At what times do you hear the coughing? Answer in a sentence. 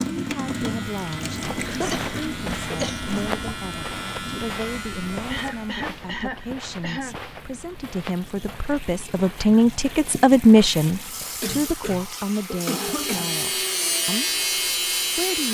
You can hear the coughing from 1.6 to 3.0 s, from 5.2 to 7.2 s and from 11.4 to 13.4 s.